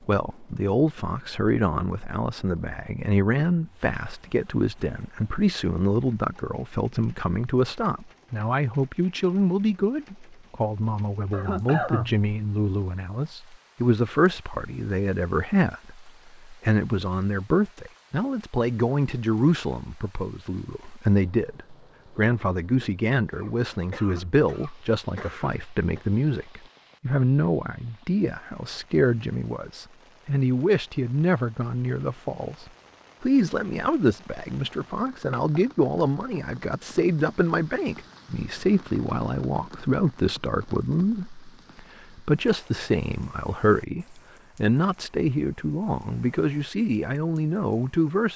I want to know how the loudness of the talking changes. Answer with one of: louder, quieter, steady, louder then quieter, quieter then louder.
steady.